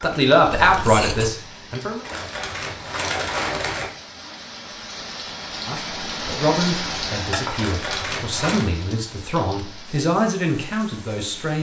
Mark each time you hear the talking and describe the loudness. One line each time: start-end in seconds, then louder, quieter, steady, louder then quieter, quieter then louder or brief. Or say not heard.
0.0-2.0 brief
5.7-11.5 quieter then louder.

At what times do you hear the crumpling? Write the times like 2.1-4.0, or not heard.
2.0-3.9, 7.5-8.7.